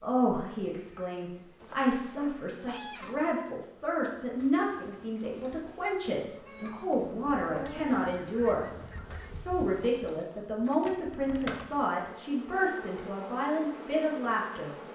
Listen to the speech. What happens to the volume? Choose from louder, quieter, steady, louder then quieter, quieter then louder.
steady.